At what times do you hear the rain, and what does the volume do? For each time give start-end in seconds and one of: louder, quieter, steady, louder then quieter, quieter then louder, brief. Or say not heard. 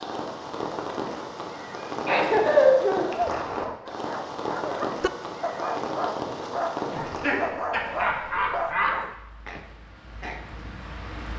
0.0-11.3 quieter.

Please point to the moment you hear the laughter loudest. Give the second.
3 s.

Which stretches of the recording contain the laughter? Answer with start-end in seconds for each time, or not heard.
2.0-3.1, 6.9-8.9.